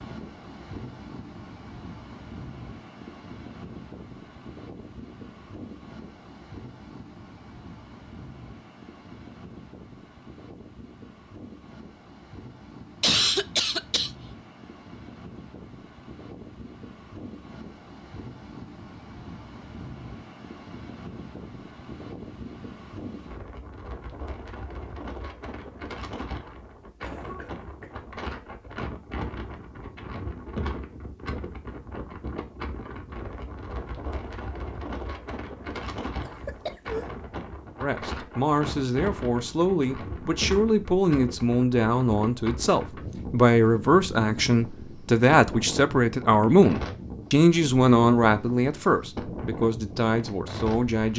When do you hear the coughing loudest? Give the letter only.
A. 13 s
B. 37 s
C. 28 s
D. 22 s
A.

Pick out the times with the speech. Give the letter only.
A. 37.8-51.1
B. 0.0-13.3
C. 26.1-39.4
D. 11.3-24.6
A.